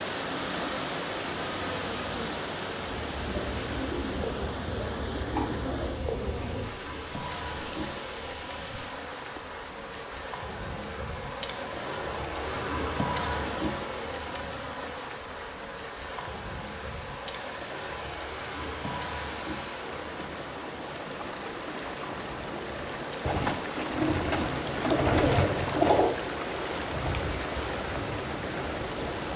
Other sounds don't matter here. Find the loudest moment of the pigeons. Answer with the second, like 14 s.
26 s.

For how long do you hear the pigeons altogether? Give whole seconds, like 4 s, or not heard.
6 s.